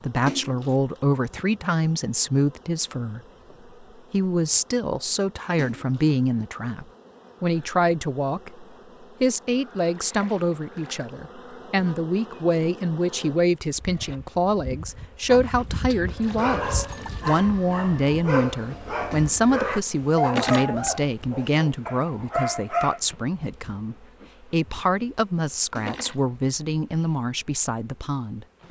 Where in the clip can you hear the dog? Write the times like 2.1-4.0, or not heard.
16.1-23.0.